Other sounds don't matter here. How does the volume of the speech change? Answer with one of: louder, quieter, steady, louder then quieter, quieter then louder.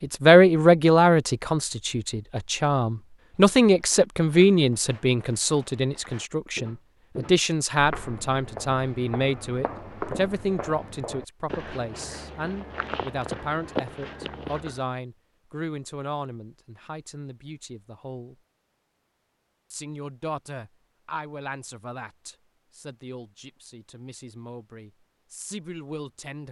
quieter.